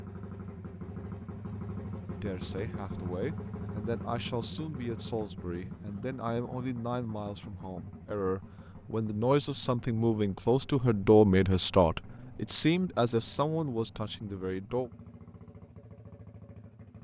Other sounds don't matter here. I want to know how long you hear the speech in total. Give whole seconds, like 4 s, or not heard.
13 s.